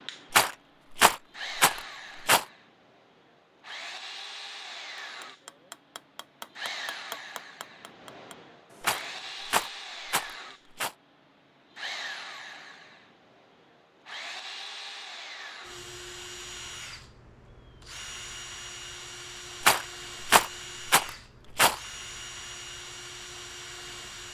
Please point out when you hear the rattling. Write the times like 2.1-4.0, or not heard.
0.3-2.5, 8.8-10.9, 19.6-21.8.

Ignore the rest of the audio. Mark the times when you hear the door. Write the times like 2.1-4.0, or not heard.
not heard.